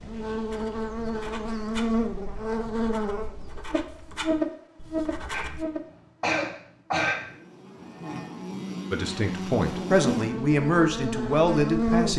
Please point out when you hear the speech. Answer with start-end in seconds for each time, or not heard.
8.9-12.1.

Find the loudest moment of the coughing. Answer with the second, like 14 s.
7 s.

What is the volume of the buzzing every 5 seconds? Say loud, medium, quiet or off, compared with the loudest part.
loud, medium, loud.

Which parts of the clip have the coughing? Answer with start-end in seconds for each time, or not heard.
5.3-7.2.